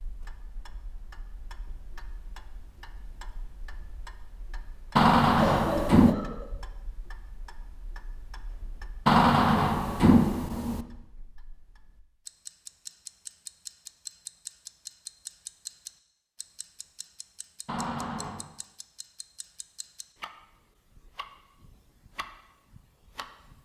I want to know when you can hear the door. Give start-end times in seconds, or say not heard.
5.0-6.2, 9.1-10.8, 17.6-18.4.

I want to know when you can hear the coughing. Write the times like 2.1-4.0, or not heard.
5.3-6.5.